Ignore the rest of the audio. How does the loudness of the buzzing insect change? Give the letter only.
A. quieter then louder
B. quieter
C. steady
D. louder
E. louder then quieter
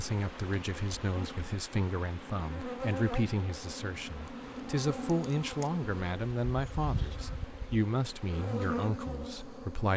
D.